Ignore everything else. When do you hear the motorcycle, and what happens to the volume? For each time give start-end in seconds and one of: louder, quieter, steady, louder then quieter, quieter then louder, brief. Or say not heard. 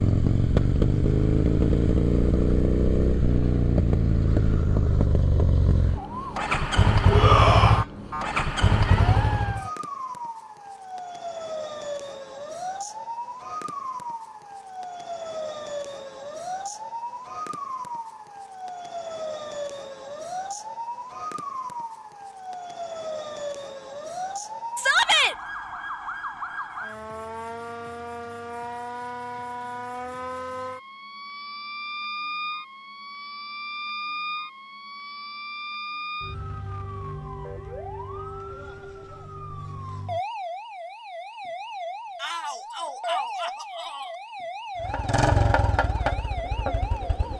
0.0-9.7 steady
44.8-47.3 brief.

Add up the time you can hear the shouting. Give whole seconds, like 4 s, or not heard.
3 s.